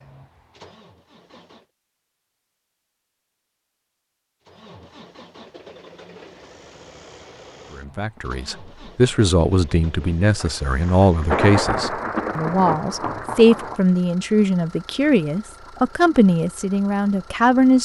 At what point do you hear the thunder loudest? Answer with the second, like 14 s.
11 s.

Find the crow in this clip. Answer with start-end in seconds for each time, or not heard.
not heard.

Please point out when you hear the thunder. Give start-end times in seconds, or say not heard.
10.4-13.8.